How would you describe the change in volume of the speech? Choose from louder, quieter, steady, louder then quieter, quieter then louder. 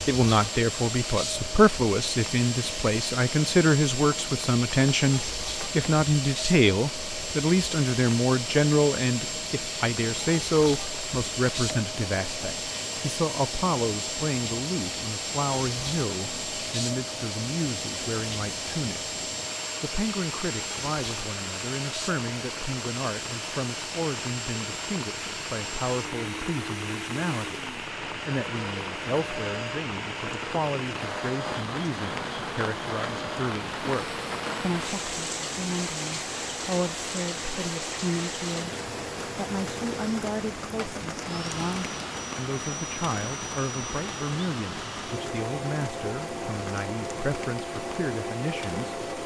quieter.